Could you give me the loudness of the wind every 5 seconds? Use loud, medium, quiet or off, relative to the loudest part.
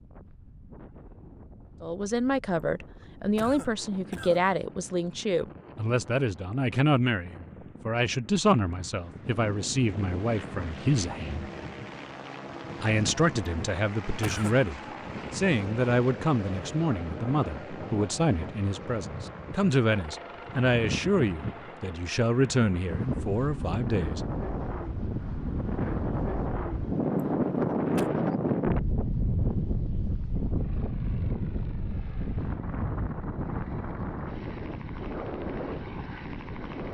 quiet, quiet, quiet, quiet, medium, loud, medium, medium.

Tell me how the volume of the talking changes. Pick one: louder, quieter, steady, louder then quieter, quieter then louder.
steady.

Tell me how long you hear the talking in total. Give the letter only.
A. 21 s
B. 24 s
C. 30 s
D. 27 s
A.